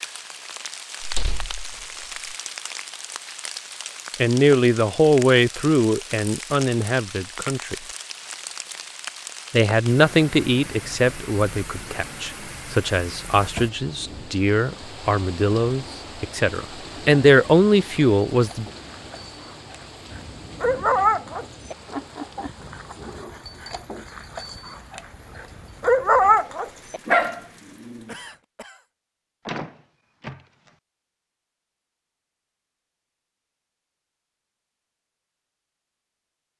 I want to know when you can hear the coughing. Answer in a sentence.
The coughing can be heard from 28.1 to 28.9 s.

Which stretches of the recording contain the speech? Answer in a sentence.
You can hear the speech from 4.2 to 7.8 s and from 9.5 to 18.6 s.